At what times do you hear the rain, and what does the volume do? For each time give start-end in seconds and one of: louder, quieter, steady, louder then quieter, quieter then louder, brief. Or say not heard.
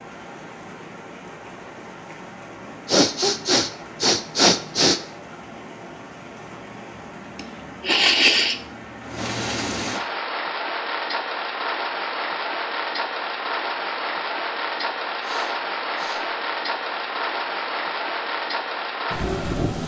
0.0-19.8 louder.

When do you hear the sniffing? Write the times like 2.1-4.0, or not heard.
2.9-5.0, 7.3-8.6, 15.2-16.2.